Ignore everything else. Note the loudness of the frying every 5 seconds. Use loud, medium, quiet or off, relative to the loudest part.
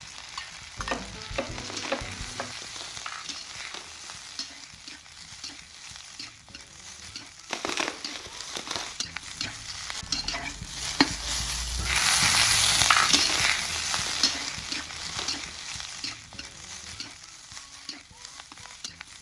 quiet, quiet, loud, quiet.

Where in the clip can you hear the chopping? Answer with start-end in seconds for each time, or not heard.
0.8-2.5.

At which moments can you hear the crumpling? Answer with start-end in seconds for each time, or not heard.
1.6-4.2, 7.5-8.9, 12.9-15.6.